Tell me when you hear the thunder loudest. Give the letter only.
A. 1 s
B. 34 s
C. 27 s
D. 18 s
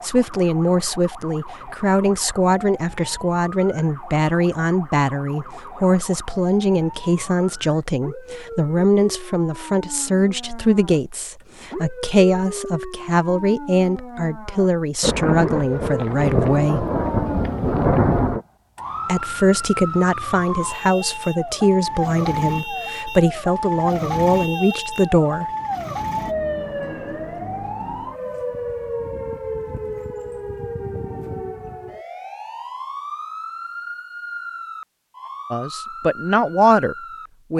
D.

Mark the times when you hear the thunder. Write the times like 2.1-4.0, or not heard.
15.0-18.4.